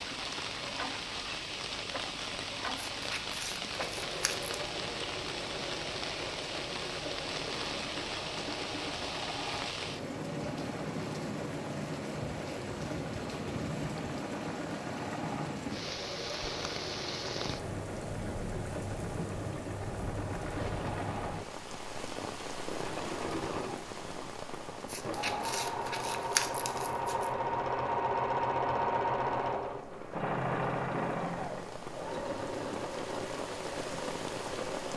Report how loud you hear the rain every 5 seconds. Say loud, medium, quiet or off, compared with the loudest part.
loud, loud, loud, loud, loud, medium, loud.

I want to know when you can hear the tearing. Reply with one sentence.
The tearing can be heard from 3.0 to 4.5 s and from 24.9 to 27.3 s.